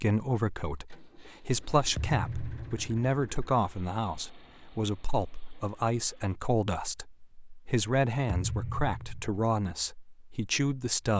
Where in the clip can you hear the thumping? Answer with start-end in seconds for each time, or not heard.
1.9-2.9, 8.2-9.4.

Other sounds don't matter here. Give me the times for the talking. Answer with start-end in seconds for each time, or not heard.
0.0-11.1.